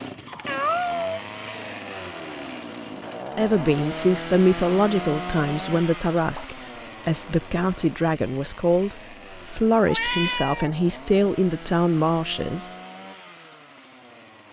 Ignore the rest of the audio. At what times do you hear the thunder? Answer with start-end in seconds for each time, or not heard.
not heard.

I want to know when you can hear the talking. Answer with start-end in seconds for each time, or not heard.
3.4-12.7.